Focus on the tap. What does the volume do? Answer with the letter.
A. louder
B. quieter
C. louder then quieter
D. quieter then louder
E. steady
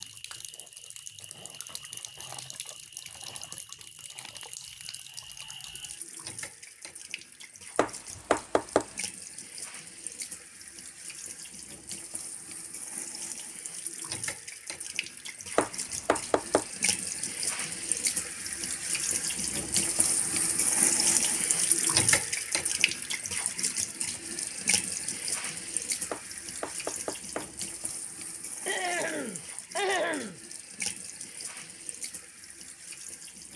C.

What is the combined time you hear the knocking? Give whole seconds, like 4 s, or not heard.
4 s.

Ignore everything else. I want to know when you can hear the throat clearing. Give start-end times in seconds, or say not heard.
28.6-30.4.